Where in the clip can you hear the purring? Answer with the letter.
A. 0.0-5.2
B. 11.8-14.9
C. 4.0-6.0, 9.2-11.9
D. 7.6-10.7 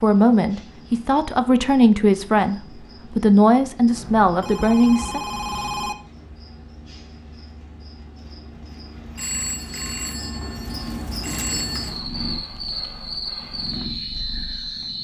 B.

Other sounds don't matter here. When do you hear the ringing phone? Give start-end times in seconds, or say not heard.
4.0-6.0, 9.2-11.9.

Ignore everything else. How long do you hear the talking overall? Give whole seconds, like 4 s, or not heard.
5 s.